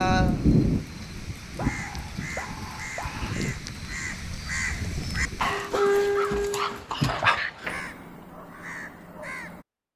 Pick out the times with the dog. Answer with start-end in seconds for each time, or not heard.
1.6-3.3, 6.2-7.8.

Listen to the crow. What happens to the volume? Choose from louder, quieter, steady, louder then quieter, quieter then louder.
louder then quieter.